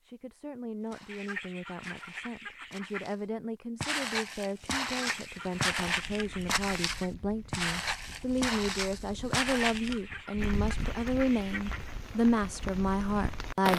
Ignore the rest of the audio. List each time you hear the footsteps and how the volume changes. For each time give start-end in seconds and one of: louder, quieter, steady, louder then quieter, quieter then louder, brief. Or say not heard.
0.8-10.0 louder.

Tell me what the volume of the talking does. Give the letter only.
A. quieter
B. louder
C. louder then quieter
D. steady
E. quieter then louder
B.